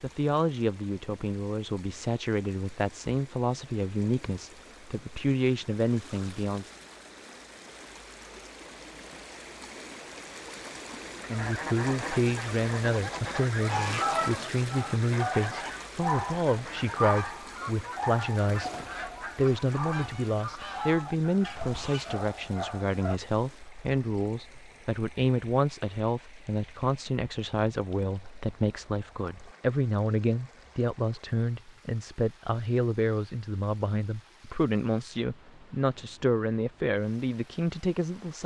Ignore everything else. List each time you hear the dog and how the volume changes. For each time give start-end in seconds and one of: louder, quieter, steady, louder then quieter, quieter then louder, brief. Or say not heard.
13.7-23.2 quieter.